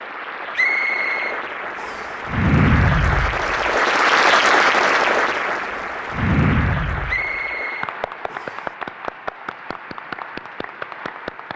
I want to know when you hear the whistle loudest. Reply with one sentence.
The loudest moment of the whistle is at 1 second.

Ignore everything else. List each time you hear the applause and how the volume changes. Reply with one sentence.
The applause can be heard from 0.0 to 11.5 s, getting louder then quieter.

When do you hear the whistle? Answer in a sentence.
You can hear the whistle from 0.6 to 2.1 s and from 7.0 to 8.7 s.